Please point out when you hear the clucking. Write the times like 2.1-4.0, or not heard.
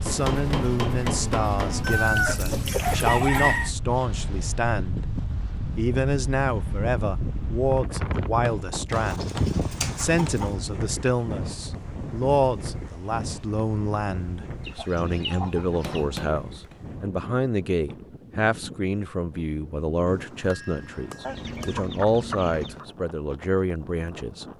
1.8-3.7, 8.9-10.6, 14.6-16.1, 21.2-22.9.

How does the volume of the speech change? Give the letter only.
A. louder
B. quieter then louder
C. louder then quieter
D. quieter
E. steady
E.